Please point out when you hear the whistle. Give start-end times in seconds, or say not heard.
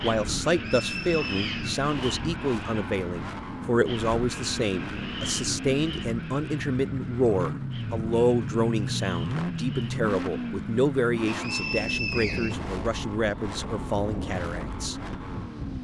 0.5-1.8, 11.2-12.6.